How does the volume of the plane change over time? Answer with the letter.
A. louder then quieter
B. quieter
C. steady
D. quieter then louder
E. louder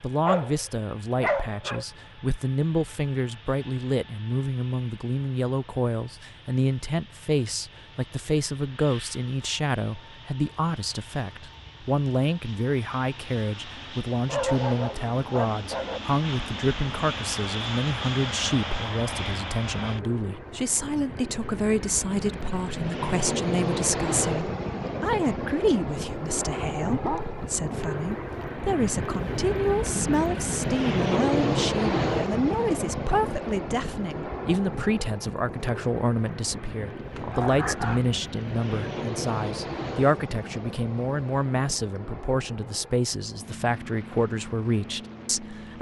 A.